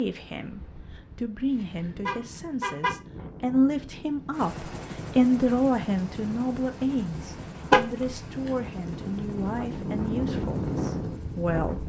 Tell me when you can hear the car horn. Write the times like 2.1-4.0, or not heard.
2.0-3.0, 7.7-8.2.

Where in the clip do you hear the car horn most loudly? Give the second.
8 s.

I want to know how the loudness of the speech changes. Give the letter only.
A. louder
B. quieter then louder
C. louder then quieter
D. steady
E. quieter
C.